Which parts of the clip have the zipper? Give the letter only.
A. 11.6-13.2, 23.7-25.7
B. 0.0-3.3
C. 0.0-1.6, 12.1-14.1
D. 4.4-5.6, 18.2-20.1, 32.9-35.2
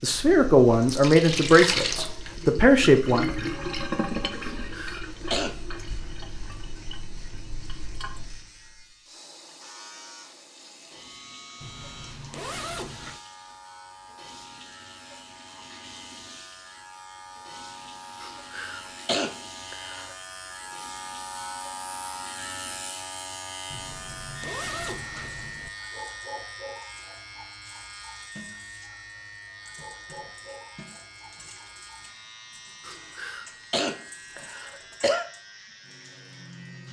A.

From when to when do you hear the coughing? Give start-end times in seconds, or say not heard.
4.4-5.6, 18.2-20.1, 32.9-35.2.